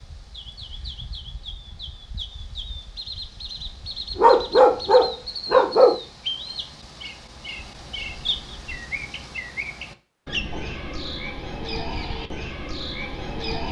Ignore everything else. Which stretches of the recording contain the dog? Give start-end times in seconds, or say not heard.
4.2-6.0.